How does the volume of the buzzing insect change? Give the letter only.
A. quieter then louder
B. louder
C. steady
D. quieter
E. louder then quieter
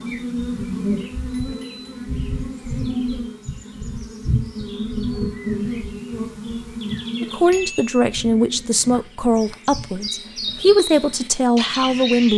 D.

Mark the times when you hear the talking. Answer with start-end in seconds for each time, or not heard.
7.2-12.3.